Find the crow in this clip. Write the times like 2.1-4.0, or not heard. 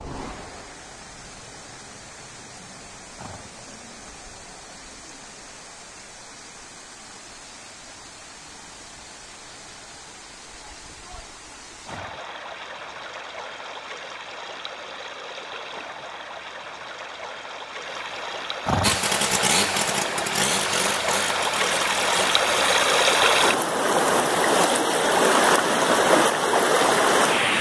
not heard.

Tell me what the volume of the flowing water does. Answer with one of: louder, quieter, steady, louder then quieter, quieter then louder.
louder.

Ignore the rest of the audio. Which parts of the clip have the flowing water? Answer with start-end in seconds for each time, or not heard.
0.0-27.5.